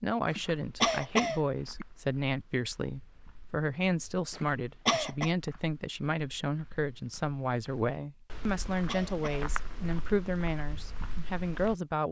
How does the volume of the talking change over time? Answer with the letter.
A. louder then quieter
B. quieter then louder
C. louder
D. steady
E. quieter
D.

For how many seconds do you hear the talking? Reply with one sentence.
You can hear the talking for 12 seconds altogether.